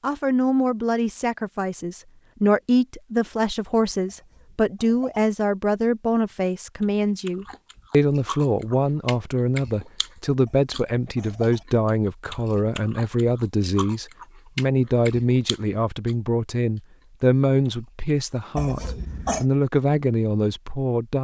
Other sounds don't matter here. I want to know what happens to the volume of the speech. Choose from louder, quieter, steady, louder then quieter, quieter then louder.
steady.